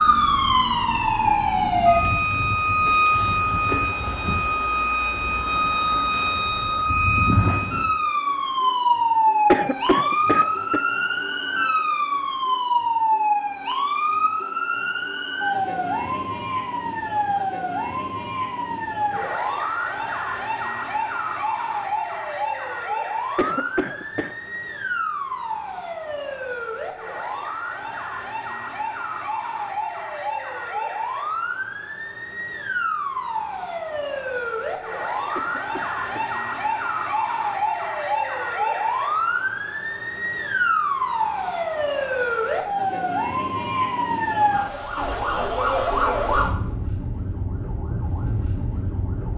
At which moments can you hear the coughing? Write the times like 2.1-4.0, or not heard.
9.4-10.8, 23.4-24.4, 35.4-36.4.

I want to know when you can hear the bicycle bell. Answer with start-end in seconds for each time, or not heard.
not heard.